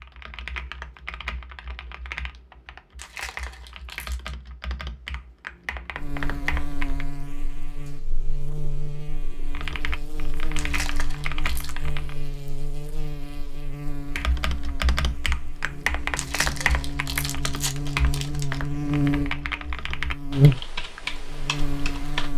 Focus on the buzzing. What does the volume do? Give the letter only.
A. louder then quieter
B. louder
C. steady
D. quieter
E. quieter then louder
B.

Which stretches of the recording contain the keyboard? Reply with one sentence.
You can hear the keyboard from 0.0 to 7.0 s, from 9.5 to 12.2 s and from 14.2 to 22.3 s.